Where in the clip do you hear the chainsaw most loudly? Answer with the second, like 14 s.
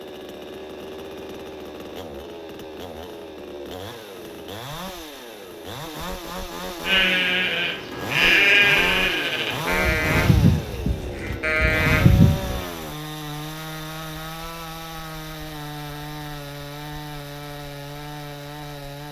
10 s.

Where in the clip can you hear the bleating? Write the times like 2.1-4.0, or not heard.
6.8-12.6.